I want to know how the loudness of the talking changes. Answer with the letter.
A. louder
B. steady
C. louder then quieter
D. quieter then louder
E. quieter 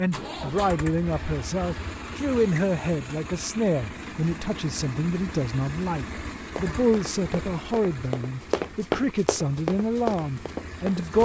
B.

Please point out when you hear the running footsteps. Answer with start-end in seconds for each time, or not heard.
6.4-11.2.